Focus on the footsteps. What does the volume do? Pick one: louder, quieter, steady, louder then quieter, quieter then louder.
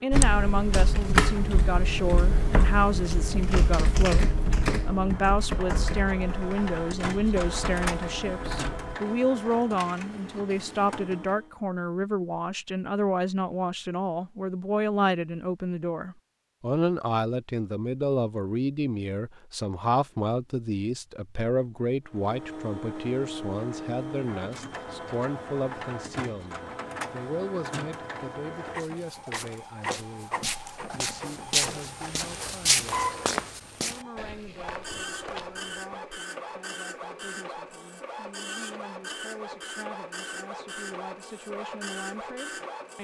louder then quieter.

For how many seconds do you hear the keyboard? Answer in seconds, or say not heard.
9 s.